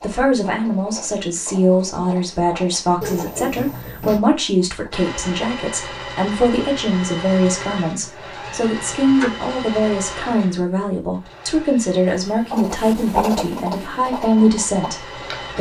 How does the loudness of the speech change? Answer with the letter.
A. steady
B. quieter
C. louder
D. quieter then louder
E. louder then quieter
A.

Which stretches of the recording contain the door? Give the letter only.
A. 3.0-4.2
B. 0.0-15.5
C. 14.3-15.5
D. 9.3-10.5
A.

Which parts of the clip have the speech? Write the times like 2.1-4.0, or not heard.
0.0-15.5.